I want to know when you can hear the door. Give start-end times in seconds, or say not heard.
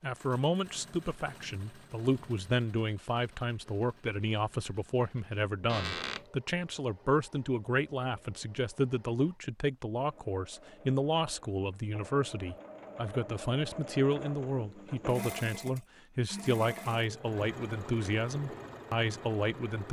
5.7-6.2.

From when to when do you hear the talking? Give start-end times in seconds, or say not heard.
0.0-19.8.